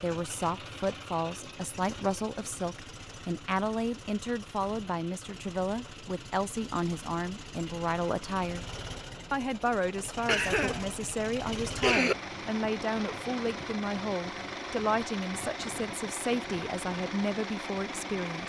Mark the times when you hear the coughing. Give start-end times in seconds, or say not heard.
10.2-12.2.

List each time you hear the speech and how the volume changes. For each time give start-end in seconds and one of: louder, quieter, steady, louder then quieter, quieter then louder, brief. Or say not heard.
0.0-8.7 steady
9.3-18.4 steady.